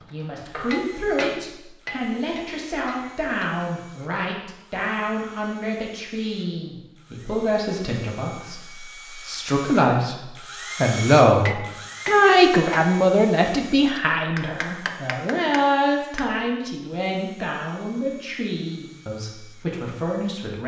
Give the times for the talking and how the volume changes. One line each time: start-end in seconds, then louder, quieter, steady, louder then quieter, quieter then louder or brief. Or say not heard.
0.1-20.6 louder then quieter.